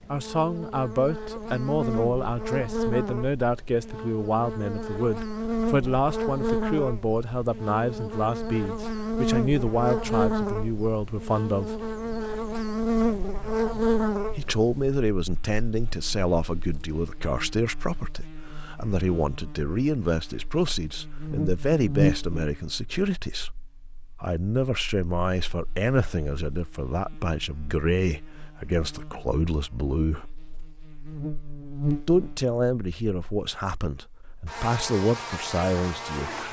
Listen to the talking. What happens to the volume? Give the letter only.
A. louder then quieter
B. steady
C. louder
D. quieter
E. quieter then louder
B.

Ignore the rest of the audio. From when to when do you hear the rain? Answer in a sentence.
The rain can't be heard in this clip.